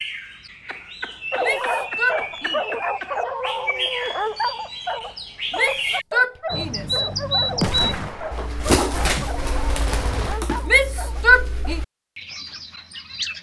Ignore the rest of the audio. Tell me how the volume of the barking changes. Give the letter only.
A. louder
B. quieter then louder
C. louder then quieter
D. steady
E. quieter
E.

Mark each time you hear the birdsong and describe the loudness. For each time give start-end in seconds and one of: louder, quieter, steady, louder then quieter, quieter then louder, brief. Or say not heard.
0.0-13.3 louder then quieter.